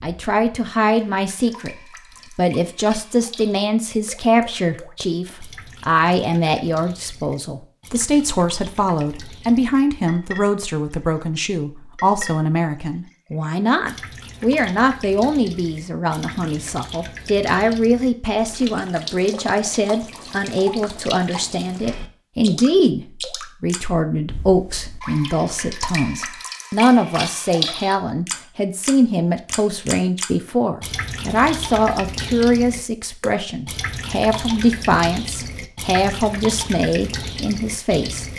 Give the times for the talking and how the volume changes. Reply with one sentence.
You can hear the talking from 0.0 to 38.2 s, at a steady volume.